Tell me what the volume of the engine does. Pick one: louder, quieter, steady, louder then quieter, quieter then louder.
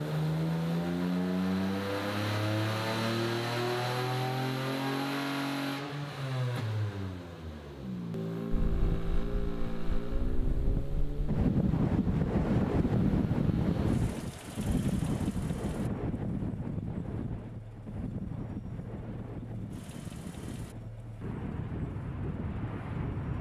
quieter.